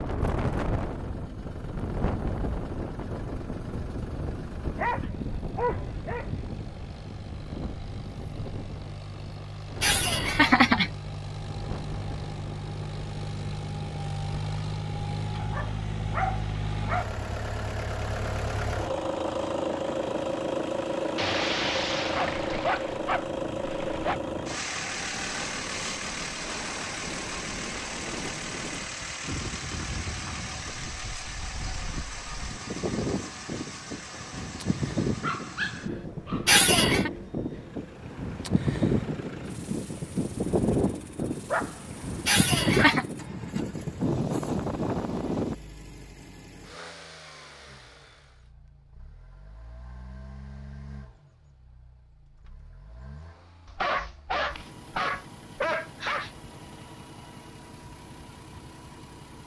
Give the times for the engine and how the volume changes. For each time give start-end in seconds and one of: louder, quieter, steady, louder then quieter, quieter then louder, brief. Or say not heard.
0.0-59.4 louder then quieter.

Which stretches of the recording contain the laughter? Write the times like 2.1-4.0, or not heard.
9.8-10.9, 36.5-37.1, 42.2-43.0.